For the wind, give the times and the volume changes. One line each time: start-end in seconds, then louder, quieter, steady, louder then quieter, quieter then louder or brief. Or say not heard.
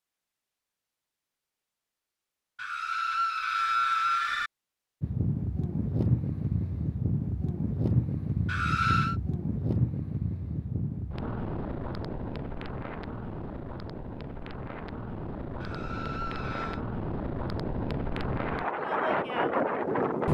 5.0-20.2 quieter then louder.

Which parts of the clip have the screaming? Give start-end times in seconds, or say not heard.
2.5-4.5, 8.4-9.2, 15.6-16.9.